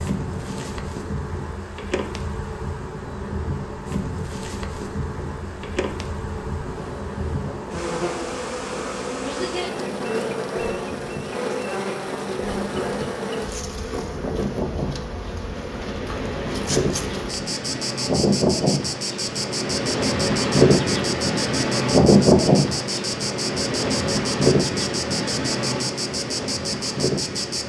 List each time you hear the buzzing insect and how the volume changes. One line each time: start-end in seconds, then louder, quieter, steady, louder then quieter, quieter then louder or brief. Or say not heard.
0.0-27.6 steady.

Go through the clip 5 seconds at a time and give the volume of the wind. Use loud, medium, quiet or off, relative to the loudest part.
quiet, quiet, quiet, medium, loud, medium.